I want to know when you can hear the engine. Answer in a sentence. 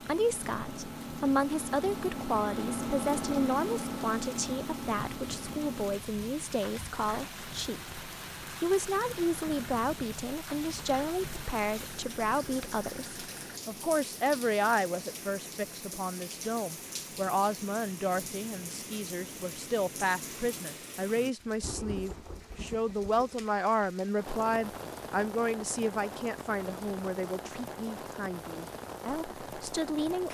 The engine can be heard from 0.0 to 13.6 s.